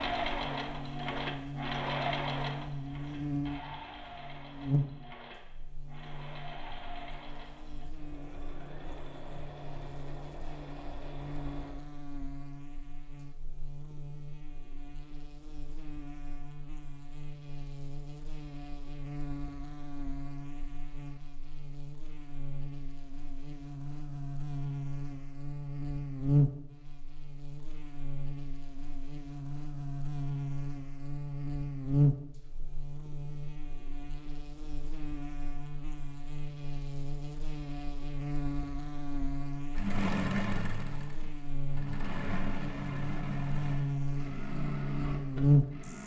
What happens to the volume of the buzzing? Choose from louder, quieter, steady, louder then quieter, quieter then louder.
quieter then louder.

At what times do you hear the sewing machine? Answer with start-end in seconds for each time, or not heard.
0.0-11.8, 39.8-46.0.